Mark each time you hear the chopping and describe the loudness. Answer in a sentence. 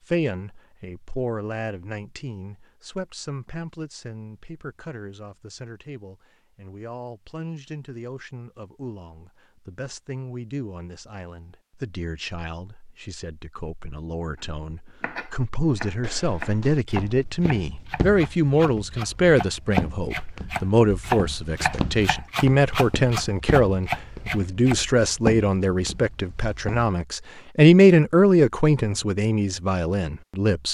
The chopping can be heard from 14.3 to 24.8 s, getting louder.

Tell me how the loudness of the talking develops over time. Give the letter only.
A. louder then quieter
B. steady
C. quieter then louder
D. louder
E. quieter
D.